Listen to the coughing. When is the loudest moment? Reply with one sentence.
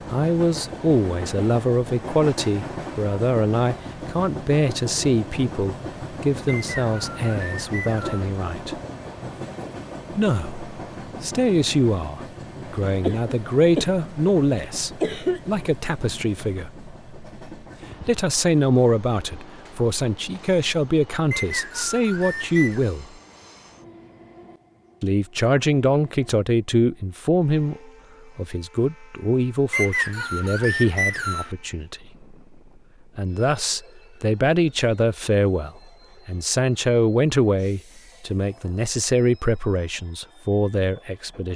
The volume of the coughing peaks at 15 seconds.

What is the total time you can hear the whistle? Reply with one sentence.
You can hear the whistle for 5 seconds altogether.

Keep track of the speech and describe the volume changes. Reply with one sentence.
The volume of the speech stays about the same.